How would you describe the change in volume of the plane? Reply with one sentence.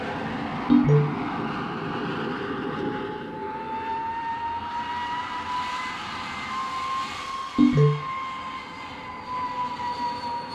The loudness of the plane stays about the same.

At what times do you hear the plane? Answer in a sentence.
The plane can be heard from 0.0 to 10.4 s.